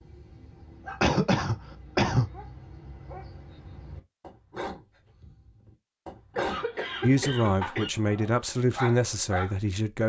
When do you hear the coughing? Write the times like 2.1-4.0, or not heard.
1.0-2.3, 6.3-7.9.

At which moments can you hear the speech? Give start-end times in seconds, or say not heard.
7.0-10.0.